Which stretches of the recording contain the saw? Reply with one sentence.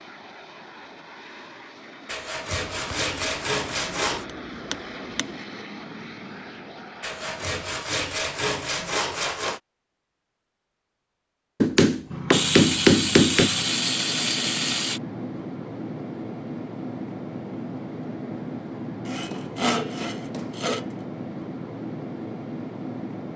You can hear the saw from 2.0 to 4.2 s, from 7.0 to 9.6 s, from 12.3 to 15.0 s and from 19.1 to 20.9 s.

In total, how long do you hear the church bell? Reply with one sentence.
You can't hear the church bell here.